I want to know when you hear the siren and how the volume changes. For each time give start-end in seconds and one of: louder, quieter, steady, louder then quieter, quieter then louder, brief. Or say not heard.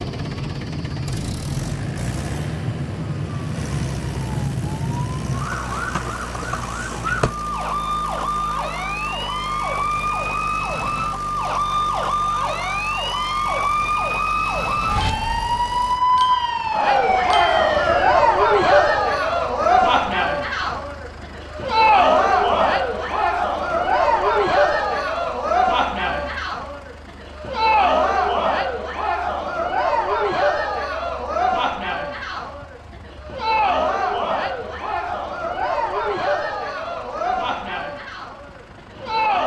0.0-18.1 louder.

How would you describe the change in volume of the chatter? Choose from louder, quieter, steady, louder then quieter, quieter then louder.
quieter.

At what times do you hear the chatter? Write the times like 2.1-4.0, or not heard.
16.7-39.4.